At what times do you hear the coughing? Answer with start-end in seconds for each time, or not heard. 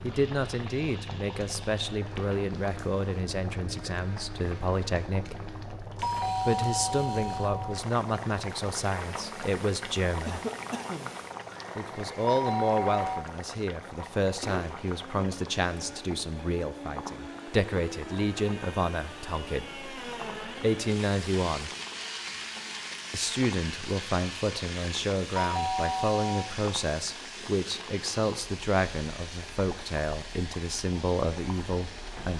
10.2-11.2.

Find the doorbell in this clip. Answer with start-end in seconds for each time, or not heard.
6.0-7.8, 12.2-13.2, 25.4-26.5.